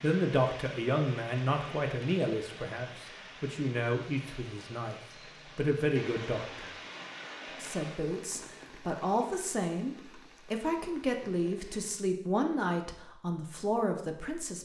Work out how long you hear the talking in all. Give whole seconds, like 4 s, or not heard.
13 s.